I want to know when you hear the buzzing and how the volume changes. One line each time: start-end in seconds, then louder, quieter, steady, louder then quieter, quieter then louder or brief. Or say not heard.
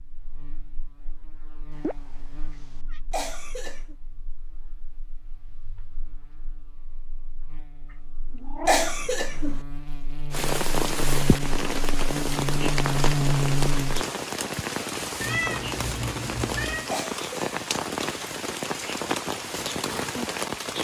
0.0-14.1 quieter then louder.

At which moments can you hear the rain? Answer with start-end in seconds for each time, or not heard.
10.3-20.7.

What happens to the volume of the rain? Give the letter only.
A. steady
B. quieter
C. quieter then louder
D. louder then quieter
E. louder
A.